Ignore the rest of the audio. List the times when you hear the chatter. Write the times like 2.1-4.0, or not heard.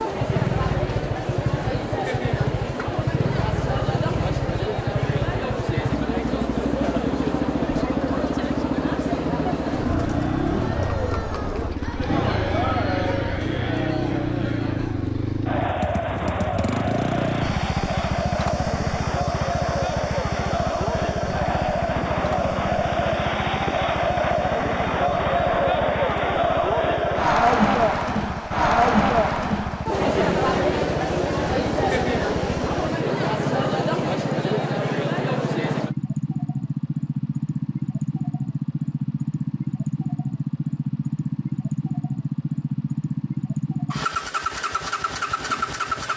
0.0-36.0.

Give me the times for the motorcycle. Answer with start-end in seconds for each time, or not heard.
0.0-46.1.